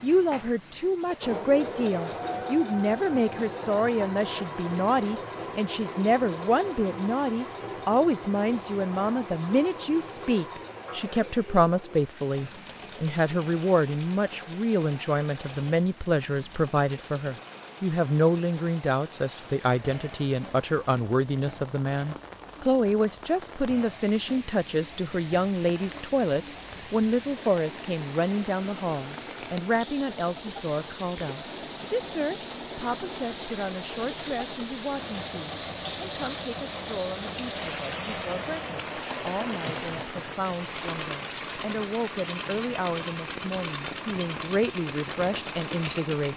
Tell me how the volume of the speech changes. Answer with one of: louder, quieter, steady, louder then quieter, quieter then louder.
quieter.